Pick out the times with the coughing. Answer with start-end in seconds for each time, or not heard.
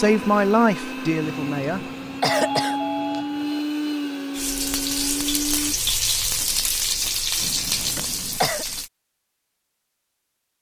1.4-3.4, 7.4-8.7.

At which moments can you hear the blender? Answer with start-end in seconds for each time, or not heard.
0.0-5.8.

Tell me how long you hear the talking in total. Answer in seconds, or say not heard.
2 s.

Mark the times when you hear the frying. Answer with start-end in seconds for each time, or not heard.
4.3-8.9.